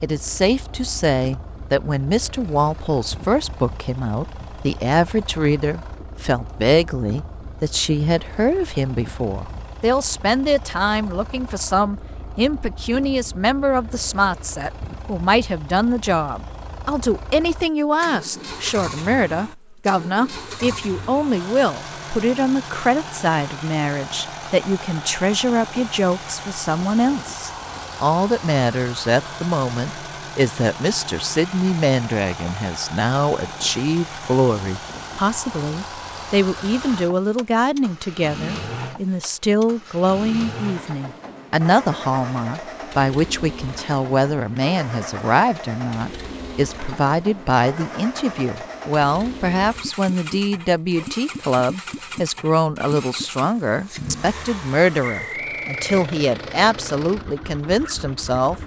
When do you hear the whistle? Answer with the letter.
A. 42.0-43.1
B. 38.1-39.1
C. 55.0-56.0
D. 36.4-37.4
C.